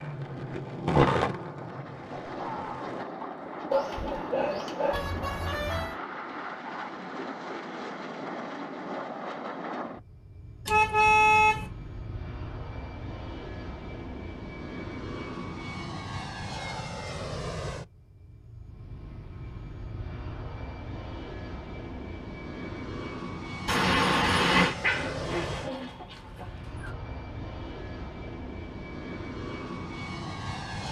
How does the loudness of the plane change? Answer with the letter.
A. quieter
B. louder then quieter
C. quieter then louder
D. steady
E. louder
D.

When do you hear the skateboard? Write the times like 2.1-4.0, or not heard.
0.0-3.0.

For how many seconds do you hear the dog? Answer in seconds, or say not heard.
4 s.